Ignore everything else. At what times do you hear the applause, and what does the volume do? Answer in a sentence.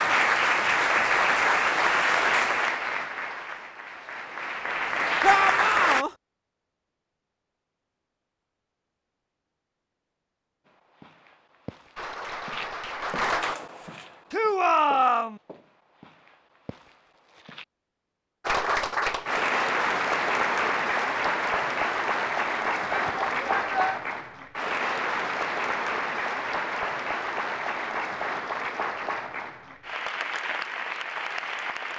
The applause can be heard from 0.0 to 6.0 s, getting quieter then louder; briefly from 11.9 to 13.6 s; and from 18.4 to 31.9 s, getting quieter.